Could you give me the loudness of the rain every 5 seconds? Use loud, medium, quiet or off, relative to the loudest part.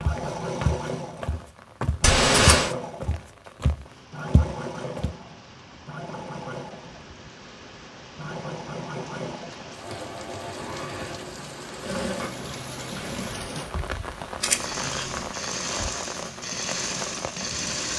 quiet, medium, loud, loud.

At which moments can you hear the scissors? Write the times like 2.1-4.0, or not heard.
2.0-2.8, 9.5-10.1, 14.4-15.3.